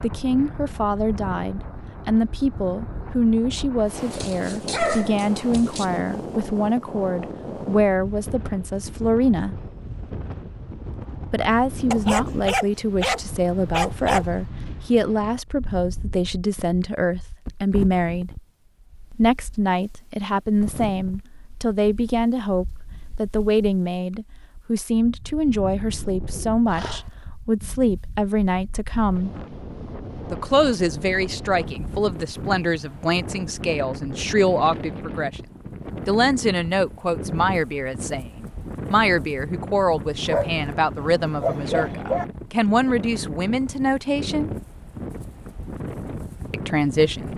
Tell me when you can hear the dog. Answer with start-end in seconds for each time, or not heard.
4.1-5.8, 11.9-14.2, 26.7-27.1, 40.2-42.2.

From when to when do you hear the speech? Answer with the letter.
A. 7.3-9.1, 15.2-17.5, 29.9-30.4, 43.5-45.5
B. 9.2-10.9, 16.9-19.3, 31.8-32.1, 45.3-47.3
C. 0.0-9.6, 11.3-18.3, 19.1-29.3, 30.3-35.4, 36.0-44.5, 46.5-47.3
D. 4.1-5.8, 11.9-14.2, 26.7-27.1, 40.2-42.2
C.